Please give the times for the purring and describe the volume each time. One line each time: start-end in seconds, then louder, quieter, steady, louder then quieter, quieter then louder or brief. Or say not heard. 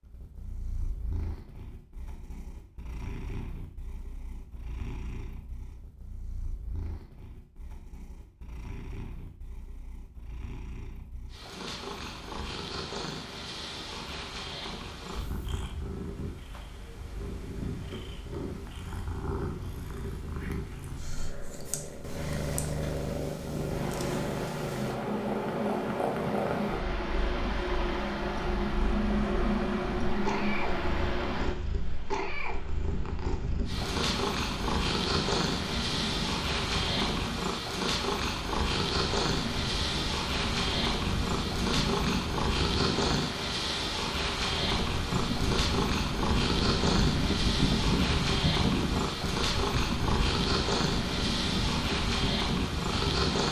0.0-53.4 louder.